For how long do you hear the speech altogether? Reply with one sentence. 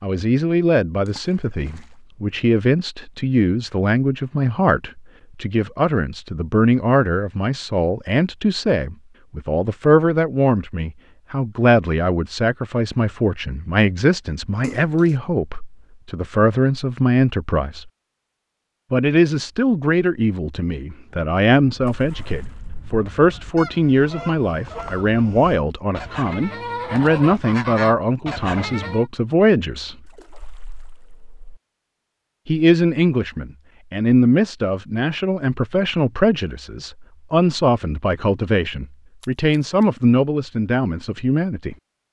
You can hear the speech for 38 seconds altogether.